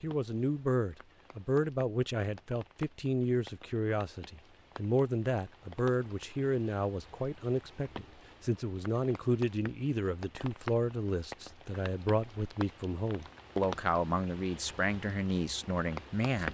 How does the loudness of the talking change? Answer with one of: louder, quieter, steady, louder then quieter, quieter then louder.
steady.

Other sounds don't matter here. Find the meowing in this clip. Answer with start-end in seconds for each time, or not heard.
not heard.